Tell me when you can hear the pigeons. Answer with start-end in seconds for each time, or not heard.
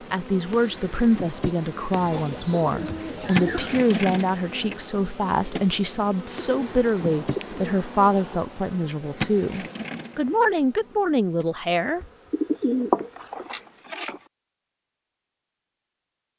1.9-3.9, 6.3-8.4, 12.3-14.2.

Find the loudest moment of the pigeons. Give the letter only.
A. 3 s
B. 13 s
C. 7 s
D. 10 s
B.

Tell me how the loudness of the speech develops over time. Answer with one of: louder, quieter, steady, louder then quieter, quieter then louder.
steady.